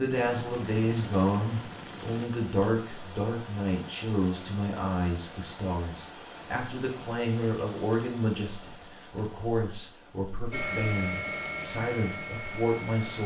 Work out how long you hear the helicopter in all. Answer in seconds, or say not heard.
5 s.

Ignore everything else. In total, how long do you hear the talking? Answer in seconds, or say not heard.
13 s.